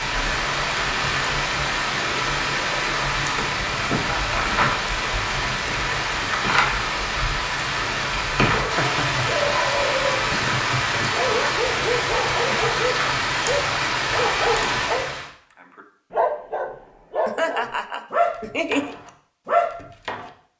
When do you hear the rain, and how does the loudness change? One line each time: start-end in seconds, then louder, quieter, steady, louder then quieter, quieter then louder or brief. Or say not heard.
0.0-15.3 steady.